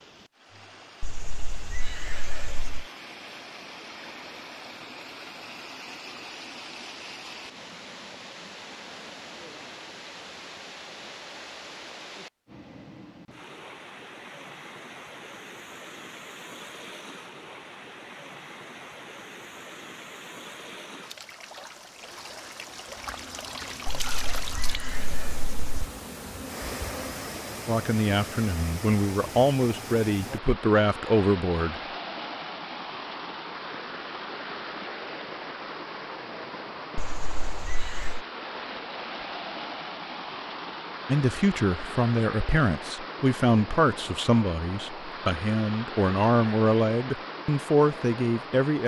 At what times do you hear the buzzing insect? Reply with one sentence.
The buzzing insect can be heard from 22.8 to 27.2 s.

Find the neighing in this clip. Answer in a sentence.
You can hear the neighing from 1.0 to 2.9 s, from 23.9 to 25.7 s and from 37.0 to 38.2 s.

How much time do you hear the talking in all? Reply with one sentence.
The talking can be heard for 12 seconds in total.